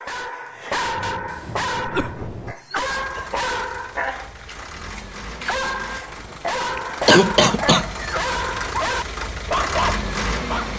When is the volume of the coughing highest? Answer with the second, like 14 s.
7 s.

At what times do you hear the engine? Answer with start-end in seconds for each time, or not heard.
2.9-10.7.